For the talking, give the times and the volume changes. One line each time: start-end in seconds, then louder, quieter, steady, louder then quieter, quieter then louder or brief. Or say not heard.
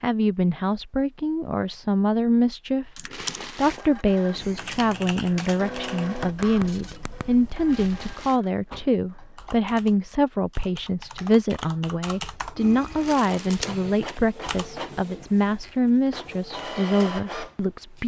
0.0-18.0 steady.